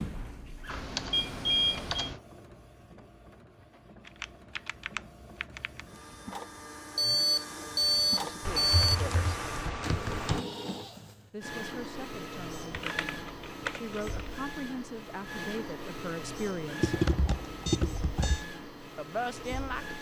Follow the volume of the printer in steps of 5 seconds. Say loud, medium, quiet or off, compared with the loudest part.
medium, loud, loud, loud.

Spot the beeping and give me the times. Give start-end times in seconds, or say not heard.
1.1-2.0, 7.0-8.9, 17.6-18.4.